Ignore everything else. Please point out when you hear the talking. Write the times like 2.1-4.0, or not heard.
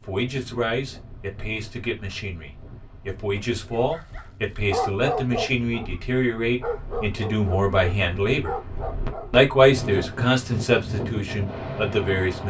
0.0-8.6, 9.3-12.4.